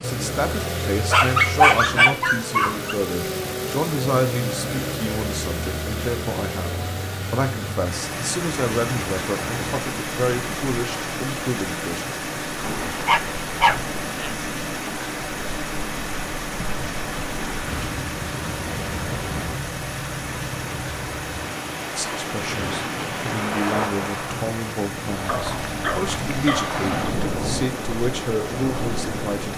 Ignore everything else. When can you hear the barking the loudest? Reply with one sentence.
The loudest moment of the barking is at 2 seconds.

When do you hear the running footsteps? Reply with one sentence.
You can't hear the running footsteps here.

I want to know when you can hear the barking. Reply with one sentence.
The barking can be heard from 1.1 to 3.0 s, from 13.1 to 14.4 s and from 25.2 to 26.9 s.